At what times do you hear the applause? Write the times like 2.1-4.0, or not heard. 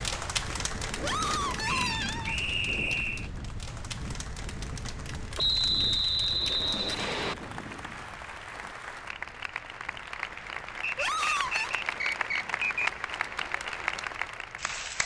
0.0-15.0.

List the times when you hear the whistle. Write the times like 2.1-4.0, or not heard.
1.6-3.3, 5.3-7.3, 10.8-12.9.